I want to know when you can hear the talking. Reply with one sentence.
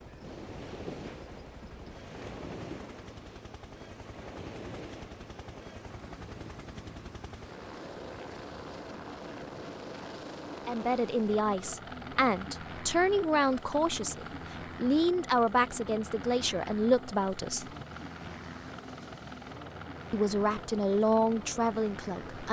You can hear the talking from 10.7 to 17.6 s and from 20.1 to 22.4 s.